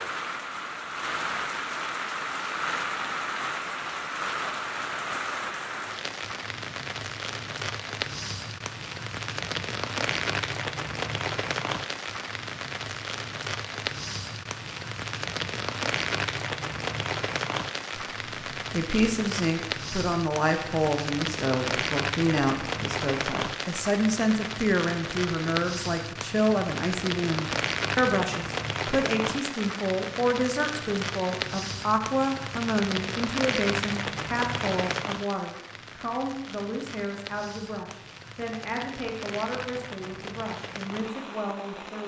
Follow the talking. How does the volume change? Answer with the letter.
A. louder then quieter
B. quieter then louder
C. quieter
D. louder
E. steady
C.